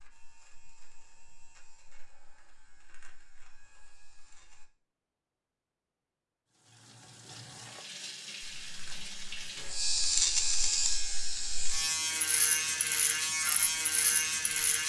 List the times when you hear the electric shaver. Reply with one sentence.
You can hear the electric shaver from 0.0 to 4.7 s and from 8.7 to 14.8 s.